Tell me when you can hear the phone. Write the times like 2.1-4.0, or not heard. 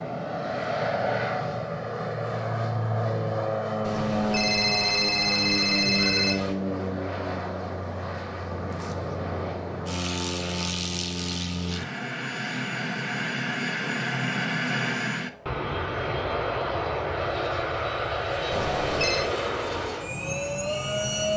3.8-6.5, 18.5-19.2.